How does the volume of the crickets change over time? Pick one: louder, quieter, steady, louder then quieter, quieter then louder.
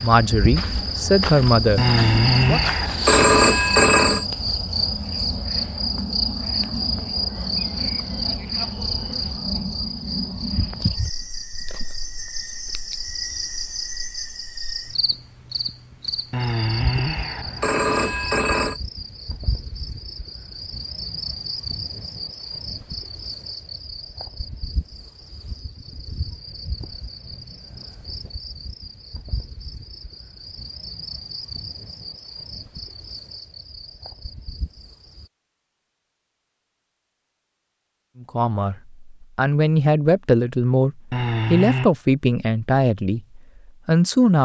quieter.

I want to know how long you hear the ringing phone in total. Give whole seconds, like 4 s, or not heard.
6 s.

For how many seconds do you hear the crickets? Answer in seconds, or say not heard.
35 s.